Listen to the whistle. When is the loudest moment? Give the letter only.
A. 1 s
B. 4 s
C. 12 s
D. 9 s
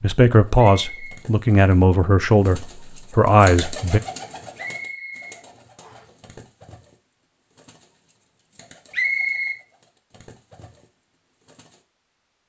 D.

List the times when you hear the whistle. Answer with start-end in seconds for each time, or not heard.
0.6-1.2, 4.5-6.0, 8.9-9.6.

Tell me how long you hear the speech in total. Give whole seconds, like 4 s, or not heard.
4 s.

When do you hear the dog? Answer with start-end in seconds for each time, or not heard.
not heard.